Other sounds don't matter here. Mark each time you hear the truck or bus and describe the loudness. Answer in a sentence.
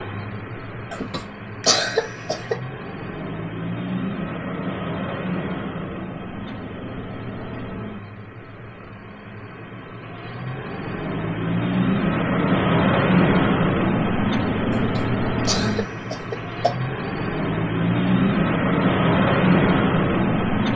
The truck or bus can be heard from 0.0 to 20.7 s, getting louder.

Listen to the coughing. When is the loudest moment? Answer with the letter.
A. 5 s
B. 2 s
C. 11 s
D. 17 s
B.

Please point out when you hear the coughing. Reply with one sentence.
You can hear the coughing from 0.9 to 2.5 s and from 14.7 to 16.8 s.